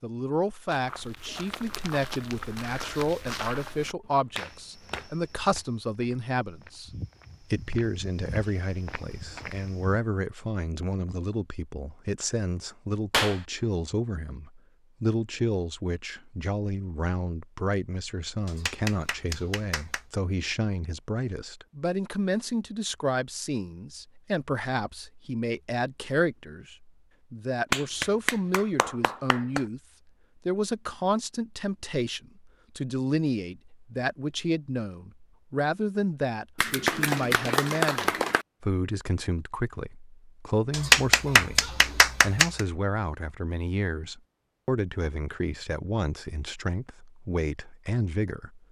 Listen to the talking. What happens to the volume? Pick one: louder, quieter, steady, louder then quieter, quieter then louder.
steady.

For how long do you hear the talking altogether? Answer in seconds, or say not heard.
47 s.